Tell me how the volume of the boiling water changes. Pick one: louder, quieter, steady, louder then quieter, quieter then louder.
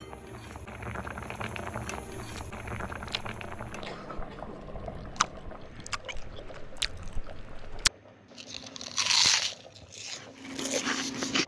quieter.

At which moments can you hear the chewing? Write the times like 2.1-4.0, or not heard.
2.1-11.4.